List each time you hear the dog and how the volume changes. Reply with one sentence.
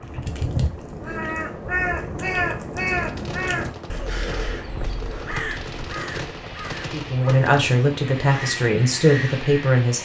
The dog can't be heard in this clip.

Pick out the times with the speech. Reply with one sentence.
The speech can be heard from 6.9 to 10.0 s.